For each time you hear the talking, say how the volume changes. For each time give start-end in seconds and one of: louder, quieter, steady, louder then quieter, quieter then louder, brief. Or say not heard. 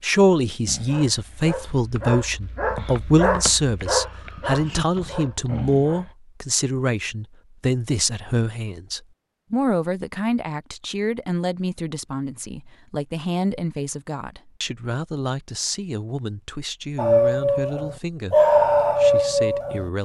0.0-20.0 quieter.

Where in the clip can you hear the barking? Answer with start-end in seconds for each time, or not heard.
0.7-6.2, 16.9-19.9.